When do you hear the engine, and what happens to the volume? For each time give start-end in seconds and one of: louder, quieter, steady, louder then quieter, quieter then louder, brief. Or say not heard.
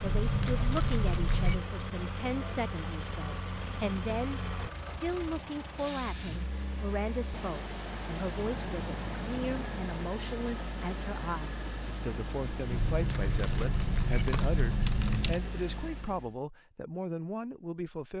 0.0-16.4 steady.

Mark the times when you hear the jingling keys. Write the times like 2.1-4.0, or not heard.
0.0-1.6, 8.3-9.9, 12.7-15.5.